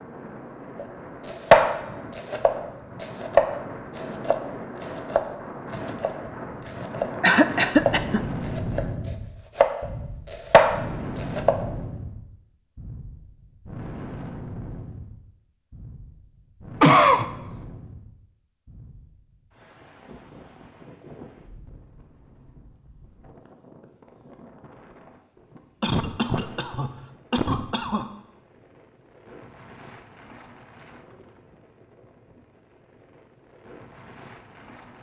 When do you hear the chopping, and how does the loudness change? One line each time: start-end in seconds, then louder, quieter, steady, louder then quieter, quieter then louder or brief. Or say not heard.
0.8-11.7 quieter then louder.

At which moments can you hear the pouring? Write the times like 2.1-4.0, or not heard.
not heard.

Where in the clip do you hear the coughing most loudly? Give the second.
17 s.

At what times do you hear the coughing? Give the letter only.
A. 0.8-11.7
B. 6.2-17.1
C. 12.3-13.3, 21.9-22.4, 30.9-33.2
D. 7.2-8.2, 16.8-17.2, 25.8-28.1
D.